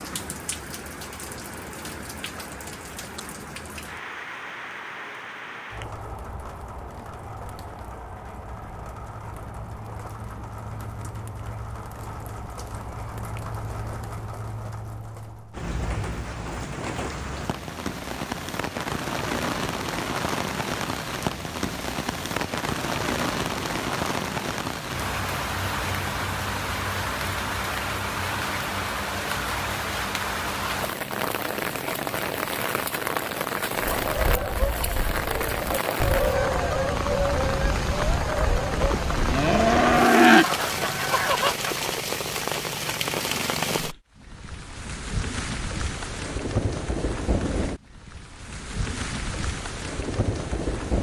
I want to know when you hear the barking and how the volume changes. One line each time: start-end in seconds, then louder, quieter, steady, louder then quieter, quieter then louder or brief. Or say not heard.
not heard.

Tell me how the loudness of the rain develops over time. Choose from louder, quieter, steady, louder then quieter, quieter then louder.
louder.